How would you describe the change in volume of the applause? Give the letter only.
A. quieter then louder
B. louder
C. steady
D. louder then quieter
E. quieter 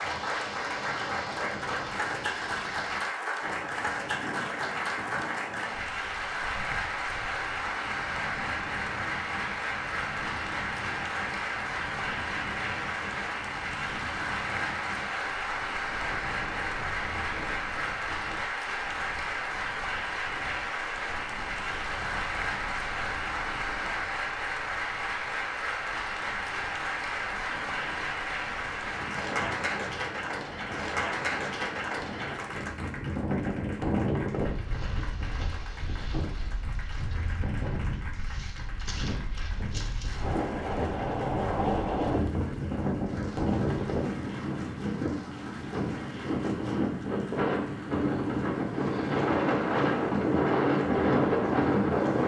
E.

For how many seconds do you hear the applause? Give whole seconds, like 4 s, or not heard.
52 s.